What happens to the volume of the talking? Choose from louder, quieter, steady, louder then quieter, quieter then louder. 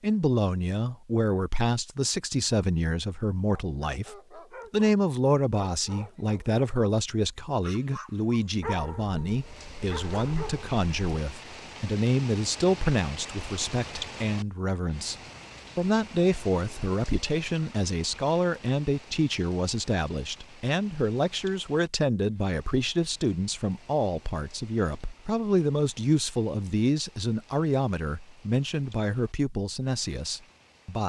steady.